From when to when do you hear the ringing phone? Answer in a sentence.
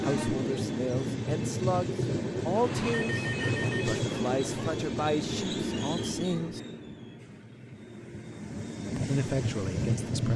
You can hear the ringing phone from 2.5 to 4.0 s.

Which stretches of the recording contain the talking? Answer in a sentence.
You can hear the talking from 0.0 to 6.6 s and from 8.9 to 10.3 s.